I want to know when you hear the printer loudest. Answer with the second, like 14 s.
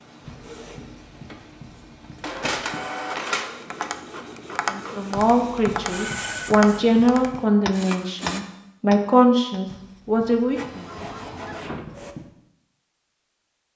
3 s.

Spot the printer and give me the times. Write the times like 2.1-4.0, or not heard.
0.0-8.4, 10.5-12.2.